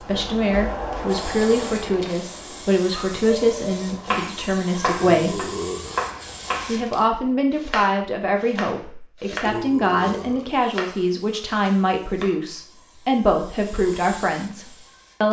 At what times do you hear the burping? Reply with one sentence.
You can hear the burping from 4.8 to 6.0 s and from 9.3 to 10.5 s.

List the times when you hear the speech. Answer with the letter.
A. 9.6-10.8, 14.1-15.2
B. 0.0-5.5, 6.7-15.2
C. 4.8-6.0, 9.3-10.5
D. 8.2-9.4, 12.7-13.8
B.